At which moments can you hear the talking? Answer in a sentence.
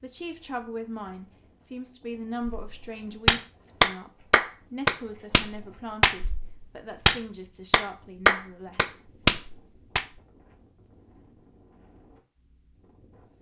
You can hear the talking from 0.0 to 9.0 s.